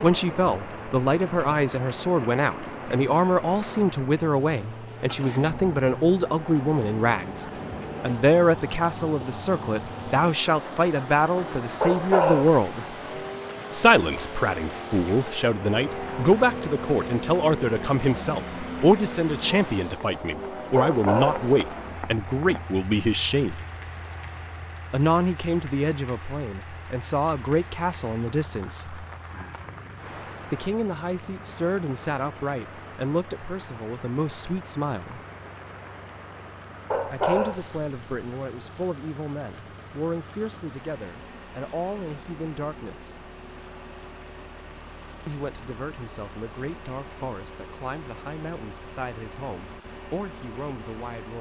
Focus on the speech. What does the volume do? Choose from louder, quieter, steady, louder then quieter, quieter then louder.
quieter.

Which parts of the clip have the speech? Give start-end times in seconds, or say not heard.
0.0-12.9, 13.7-23.6, 24.9-29.1, 30.5-35.2, 37.1-43.2, 45.2-51.3.